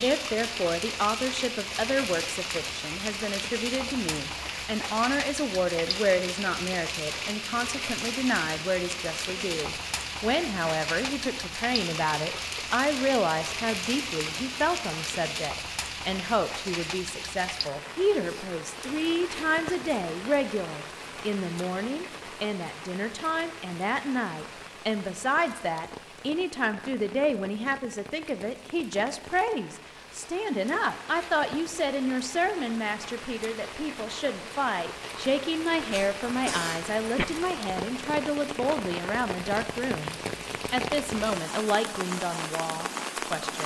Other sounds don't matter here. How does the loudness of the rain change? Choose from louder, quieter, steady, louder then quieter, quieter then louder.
quieter then louder.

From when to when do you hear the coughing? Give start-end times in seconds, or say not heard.
35.9-37.2.